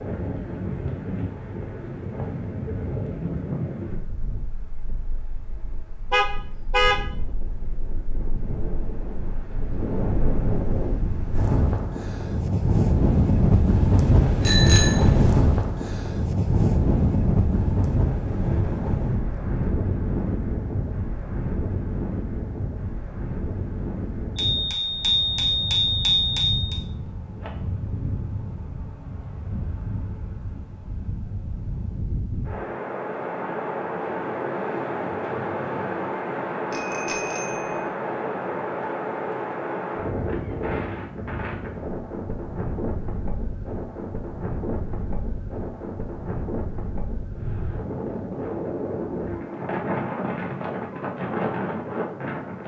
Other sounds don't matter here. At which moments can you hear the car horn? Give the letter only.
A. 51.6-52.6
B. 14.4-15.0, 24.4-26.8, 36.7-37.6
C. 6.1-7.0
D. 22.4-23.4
C.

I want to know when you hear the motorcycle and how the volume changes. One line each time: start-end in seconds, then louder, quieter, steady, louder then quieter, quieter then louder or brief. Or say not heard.
not heard.